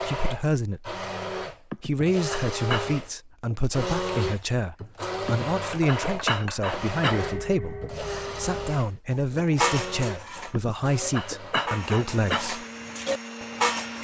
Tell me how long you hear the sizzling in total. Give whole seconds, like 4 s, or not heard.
not heard.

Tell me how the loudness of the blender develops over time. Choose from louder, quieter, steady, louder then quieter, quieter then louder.
quieter.